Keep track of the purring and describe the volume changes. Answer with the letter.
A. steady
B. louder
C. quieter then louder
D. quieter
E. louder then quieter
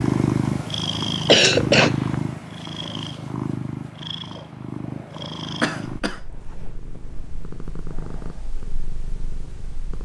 D.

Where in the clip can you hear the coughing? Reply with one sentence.
You can hear the coughing from 1.2 to 2.2 s and from 5.6 to 6.2 s.